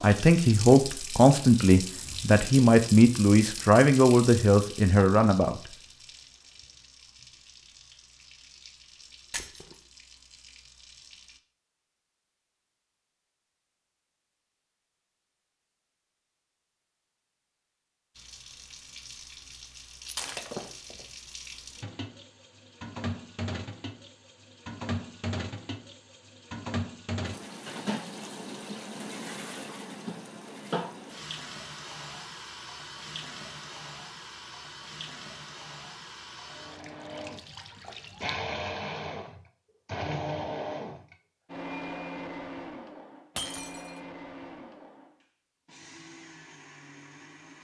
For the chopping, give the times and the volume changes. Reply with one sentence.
You can't hear the chopping here.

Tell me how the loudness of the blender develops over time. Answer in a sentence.
The volume of the blender goes down.